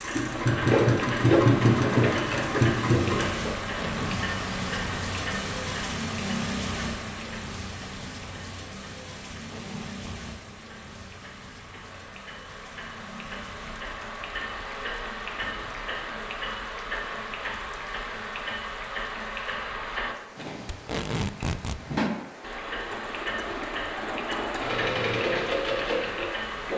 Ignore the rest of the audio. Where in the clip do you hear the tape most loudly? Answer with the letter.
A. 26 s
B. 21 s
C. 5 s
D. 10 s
B.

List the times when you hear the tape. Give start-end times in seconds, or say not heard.
3.6-4.2, 9.3-10.2, 20.7-21.8.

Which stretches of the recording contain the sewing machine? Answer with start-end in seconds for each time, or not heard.
0.0-5.0, 22.4-26.7.